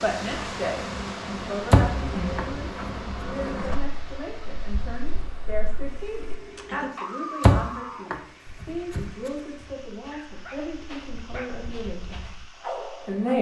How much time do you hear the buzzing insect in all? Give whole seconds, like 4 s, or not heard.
6 s.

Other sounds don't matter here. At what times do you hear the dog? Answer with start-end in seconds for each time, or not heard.
6.2-13.3.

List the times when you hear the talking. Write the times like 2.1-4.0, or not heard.
0.0-13.3.